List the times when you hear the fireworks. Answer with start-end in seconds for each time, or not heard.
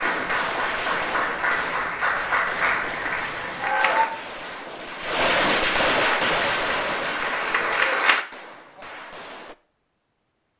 0.0-9.6.